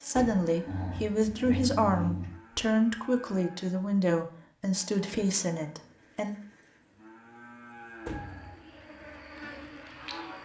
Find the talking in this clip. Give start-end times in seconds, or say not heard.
0.0-6.3.